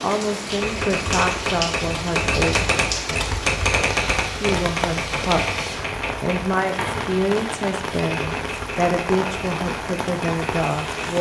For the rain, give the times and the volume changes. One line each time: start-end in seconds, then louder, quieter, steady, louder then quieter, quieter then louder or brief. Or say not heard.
0.0-11.1 steady.